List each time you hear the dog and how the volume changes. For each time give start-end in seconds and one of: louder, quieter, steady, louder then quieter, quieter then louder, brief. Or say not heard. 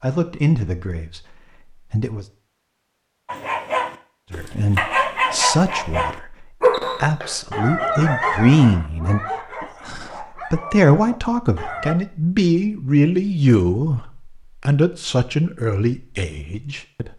3.2-11.9 quieter.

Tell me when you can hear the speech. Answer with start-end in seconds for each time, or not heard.
0.0-2.2, 4.3-17.1.